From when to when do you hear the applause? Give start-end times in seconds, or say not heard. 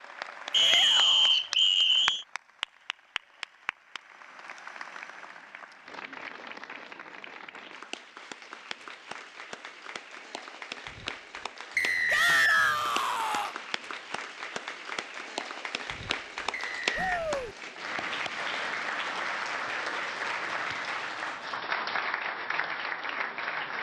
0.0-23.7.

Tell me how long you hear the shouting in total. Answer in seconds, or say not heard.
3 s.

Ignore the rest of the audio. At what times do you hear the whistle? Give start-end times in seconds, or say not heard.
0.5-2.2, 11.8-12.8, 16.5-17.2.